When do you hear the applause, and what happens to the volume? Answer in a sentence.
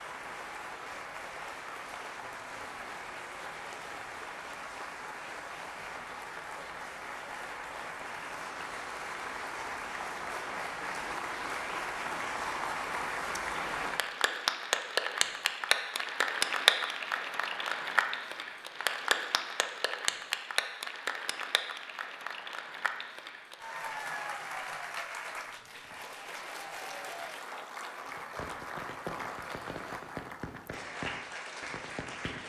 The applause can be heard from 0.0 to 32.4 s, getting louder then quieter.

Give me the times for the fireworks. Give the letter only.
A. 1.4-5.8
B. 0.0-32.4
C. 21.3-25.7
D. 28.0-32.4
D.